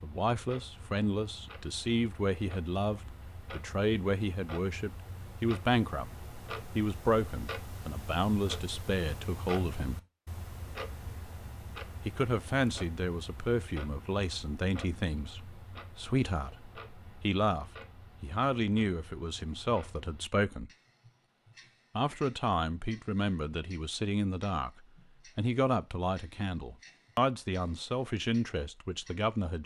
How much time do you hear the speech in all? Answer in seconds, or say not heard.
25 s.